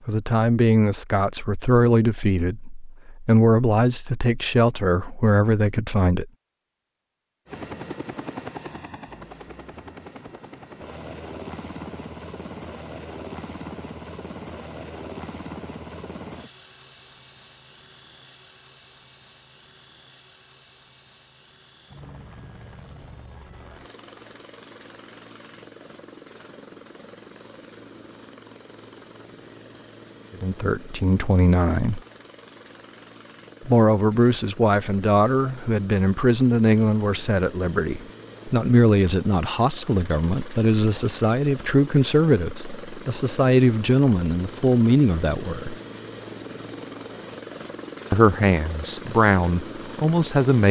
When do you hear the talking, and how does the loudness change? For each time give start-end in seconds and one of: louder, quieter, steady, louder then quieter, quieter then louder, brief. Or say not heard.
0.1-6.3 steady
30.4-32.0 brief
33.6-45.8 steady
48.1-50.6 brief.